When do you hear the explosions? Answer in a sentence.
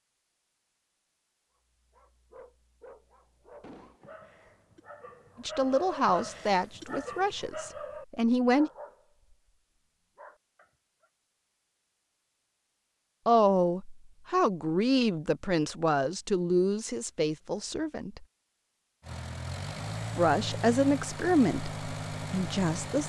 You can hear the explosions from 3.6 to 4.2 s.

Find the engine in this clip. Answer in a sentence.
The engine can be heard from 19.0 to 23.0 s.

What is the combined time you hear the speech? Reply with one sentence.
The speech can be heard for 11 seconds in total.